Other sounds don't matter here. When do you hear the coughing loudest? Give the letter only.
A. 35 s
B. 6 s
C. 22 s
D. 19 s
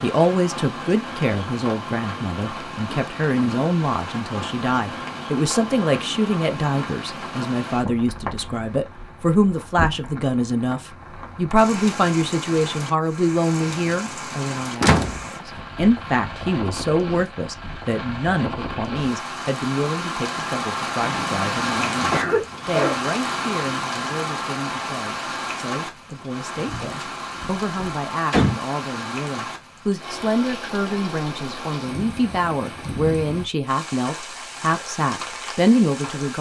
C.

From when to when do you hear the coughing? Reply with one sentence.
You can hear the coughing from 21.0 to 23.0 s.